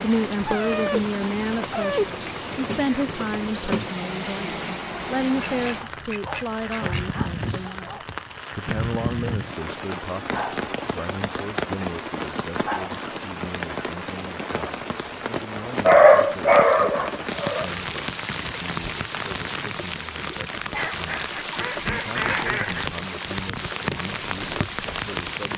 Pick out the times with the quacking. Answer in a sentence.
The quacking can be heard from 5.4 to 7.2 s and from 20.8 to 22.9 s.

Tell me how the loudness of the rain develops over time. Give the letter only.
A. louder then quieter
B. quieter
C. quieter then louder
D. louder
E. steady
E.